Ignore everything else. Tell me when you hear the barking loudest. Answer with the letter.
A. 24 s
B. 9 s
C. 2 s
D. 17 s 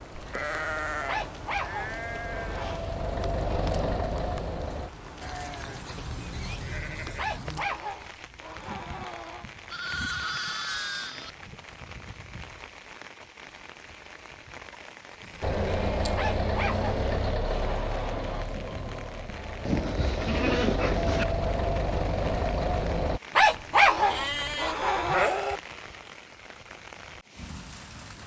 A.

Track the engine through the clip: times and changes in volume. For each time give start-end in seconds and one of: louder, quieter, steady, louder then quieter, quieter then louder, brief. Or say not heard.
0.0-4.9 louder
15.4-23.2 quieter then louder.